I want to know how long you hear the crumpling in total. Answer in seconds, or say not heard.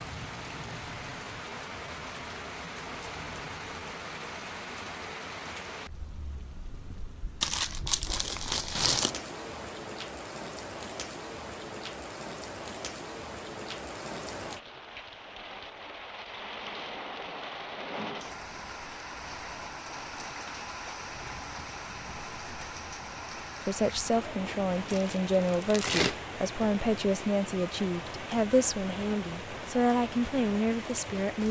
3 s.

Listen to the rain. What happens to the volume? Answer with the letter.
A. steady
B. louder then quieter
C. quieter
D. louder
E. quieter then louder
A.